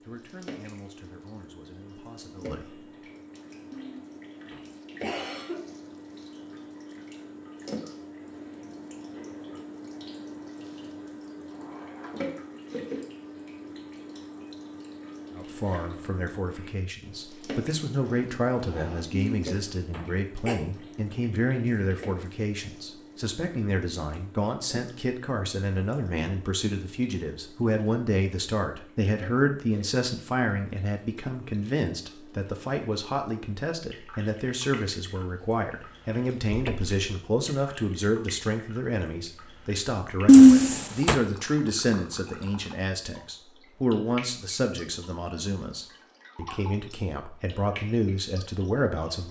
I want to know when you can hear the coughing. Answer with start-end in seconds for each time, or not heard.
3.7-5.6, 19.1-20.6, 40.2-41.1.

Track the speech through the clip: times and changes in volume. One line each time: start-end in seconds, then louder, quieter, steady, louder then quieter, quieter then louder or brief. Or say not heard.
0.0-2.7 brief
15.3-49.2 steady.